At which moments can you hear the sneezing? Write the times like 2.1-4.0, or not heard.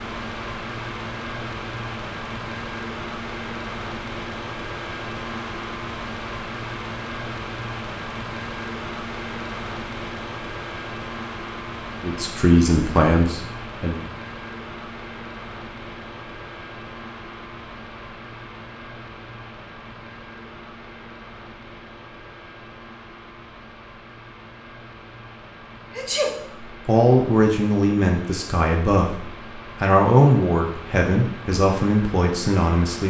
25.9-26.4.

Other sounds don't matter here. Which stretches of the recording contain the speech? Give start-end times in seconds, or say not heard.
12.0-14.0, 26.9-33.0.